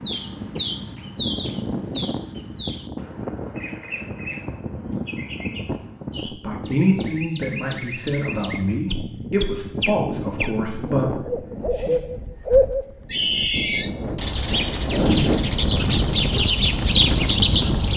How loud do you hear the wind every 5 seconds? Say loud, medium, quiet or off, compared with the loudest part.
medium, medium, medium, loud.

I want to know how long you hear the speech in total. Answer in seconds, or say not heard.
6 s.